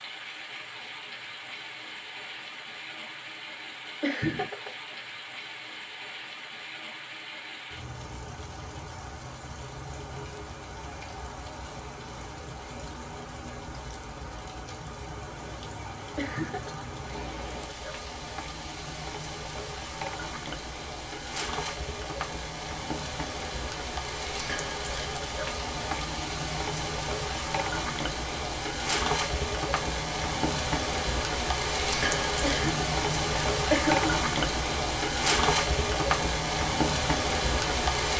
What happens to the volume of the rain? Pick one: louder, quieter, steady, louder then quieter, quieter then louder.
louder.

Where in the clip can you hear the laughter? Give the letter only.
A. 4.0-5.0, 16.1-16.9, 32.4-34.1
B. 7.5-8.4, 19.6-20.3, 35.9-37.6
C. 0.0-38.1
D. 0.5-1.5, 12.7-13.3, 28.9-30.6
A.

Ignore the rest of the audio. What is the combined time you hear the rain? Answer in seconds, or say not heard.
38 s.